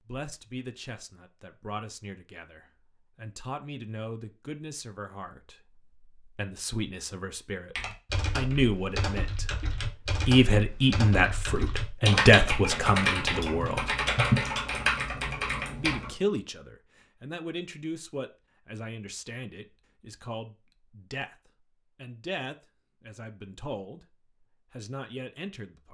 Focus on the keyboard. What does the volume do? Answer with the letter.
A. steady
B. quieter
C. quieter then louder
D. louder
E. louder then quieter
D.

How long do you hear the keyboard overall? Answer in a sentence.
The keyboard can be heard for 8 seconds in total.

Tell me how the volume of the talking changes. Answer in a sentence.
The volume of the talking goes up, then down.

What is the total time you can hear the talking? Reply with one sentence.
The talking can be heard for 24 seconds in total.